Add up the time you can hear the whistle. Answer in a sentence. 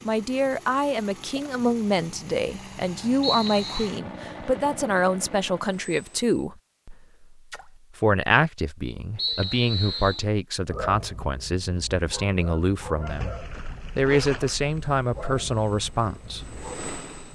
The whistle can be heard for 2 seconds in total.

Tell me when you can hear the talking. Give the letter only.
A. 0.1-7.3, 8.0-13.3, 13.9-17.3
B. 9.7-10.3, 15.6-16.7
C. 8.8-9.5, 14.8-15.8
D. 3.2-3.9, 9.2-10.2
A.